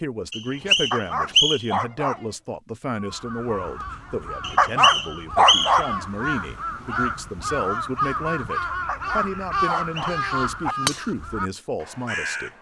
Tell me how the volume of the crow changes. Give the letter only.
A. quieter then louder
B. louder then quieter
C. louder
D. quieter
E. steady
C.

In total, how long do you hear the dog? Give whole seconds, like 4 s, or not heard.
5 s.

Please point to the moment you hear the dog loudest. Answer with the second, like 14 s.
5 s.